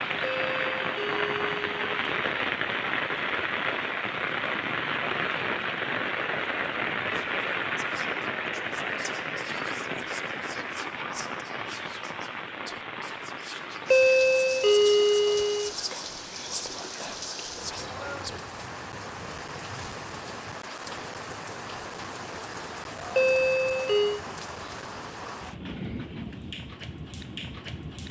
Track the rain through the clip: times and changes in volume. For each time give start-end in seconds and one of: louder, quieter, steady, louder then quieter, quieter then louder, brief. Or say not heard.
0.0-28.0 quieter.